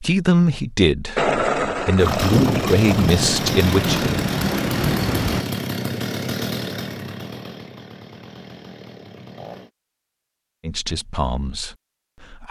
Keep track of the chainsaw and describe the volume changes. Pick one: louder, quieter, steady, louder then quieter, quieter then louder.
quieter.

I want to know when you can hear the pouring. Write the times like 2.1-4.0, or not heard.
1.1-3.1.